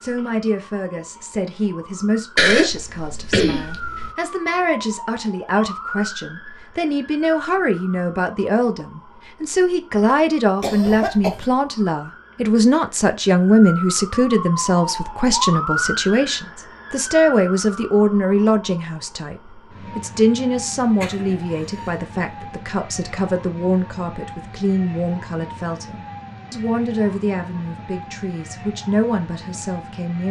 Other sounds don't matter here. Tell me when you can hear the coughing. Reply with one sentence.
You can hear the coughing from 2.4 to 4.1 s, from 10.6 to 11.4 s and from 20.8 to 22.1 s.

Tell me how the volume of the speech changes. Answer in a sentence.
The loudness of the speech goes up, then down.